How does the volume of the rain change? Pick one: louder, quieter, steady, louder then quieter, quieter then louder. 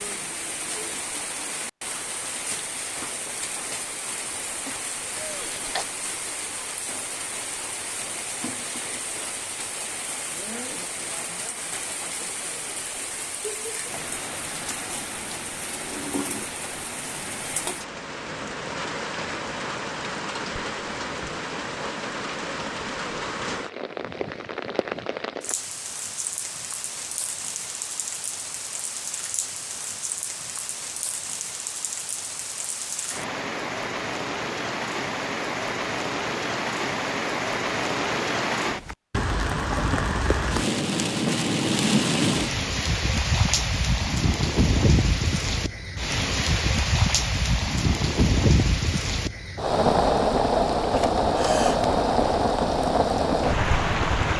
louder.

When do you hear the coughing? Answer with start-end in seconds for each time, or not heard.
4.5-5.8, 50.8-52.0.